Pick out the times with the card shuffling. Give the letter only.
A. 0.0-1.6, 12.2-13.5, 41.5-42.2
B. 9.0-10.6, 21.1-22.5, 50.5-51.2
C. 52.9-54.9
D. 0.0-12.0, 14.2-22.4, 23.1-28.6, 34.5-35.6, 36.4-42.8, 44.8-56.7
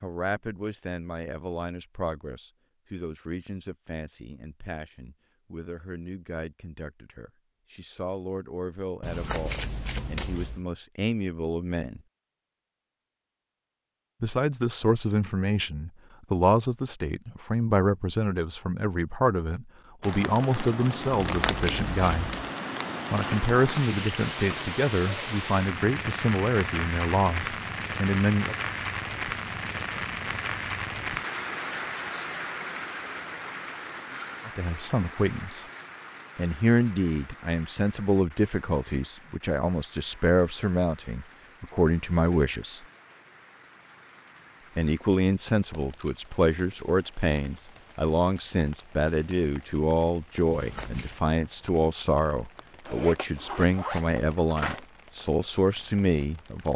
B.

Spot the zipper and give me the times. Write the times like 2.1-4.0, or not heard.
52.9-54.9.